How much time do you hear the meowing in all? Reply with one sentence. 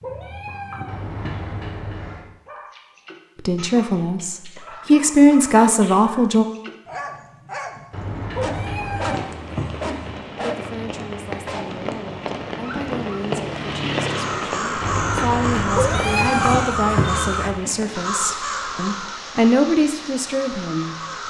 You can hear the meowing for 5 seconds altogether.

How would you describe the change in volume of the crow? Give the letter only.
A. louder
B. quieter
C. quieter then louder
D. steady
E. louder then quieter
B.